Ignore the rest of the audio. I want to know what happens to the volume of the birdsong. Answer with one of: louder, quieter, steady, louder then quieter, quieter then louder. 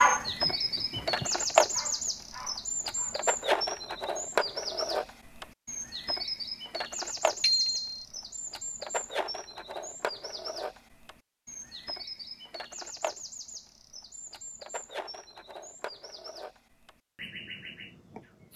quieter.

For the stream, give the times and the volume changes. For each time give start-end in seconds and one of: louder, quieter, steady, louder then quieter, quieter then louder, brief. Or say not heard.
not heard.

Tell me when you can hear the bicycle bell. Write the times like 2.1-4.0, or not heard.
7.4-8.0.